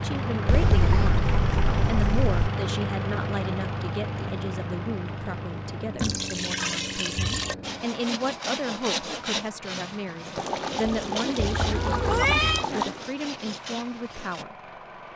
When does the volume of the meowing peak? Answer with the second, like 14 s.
12 s.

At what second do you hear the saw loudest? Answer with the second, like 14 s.
9 s.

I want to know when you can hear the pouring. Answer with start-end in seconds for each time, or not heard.
0.5-2.5, 6.0-7.5, 10.3-13.0.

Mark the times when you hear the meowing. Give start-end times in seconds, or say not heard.
0.5-1.2, 11.4-12.7.